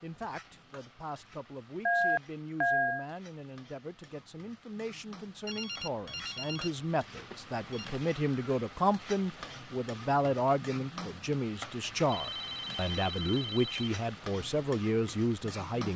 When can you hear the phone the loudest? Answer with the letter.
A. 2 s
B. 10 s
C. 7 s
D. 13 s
A.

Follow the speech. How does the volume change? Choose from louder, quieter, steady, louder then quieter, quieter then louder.
louder.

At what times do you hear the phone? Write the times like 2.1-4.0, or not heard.
1.9-3.0, 5.5-8.0, 12.1-13.9.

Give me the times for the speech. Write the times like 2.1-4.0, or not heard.
0.0-15.9.